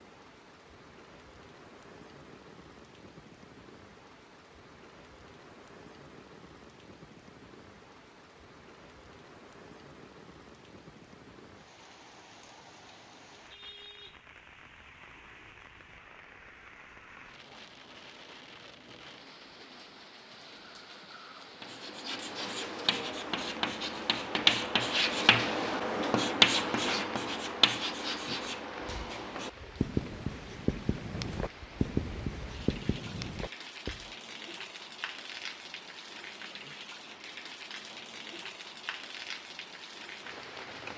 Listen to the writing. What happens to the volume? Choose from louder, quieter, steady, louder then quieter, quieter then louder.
louder then quieter.